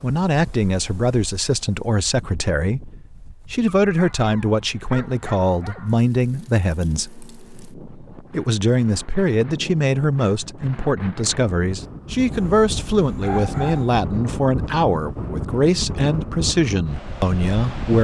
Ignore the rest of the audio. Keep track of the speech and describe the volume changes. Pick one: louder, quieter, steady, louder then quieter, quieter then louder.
steady.